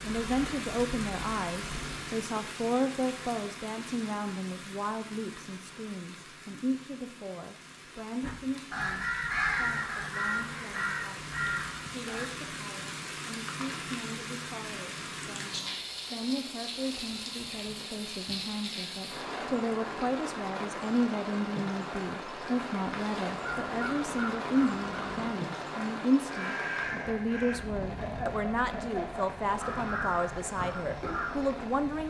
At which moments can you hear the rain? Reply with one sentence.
You can hear the rain from 0.0 to 32.0 s.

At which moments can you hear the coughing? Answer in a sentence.
You can't hear the coughing here.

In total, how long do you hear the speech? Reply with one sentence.
You can hear the speech for 32 seconds altogether.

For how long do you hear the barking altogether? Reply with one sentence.
You can't hear the barking here.